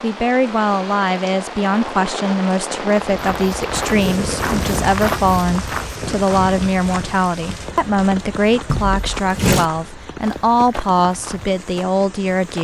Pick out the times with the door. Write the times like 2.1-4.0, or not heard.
8.7-9.7.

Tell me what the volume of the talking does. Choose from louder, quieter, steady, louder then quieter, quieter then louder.
steady.